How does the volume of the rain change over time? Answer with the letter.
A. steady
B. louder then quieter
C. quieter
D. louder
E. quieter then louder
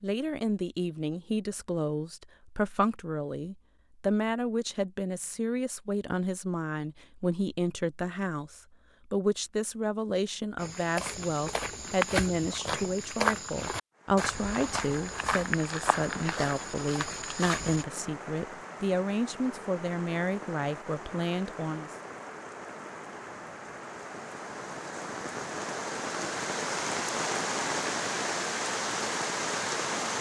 D.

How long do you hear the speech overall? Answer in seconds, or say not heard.
22 s.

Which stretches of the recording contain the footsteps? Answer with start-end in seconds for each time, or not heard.
10.6-17.9.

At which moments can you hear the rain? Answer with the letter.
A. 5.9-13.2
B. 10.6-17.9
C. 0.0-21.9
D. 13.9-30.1
D.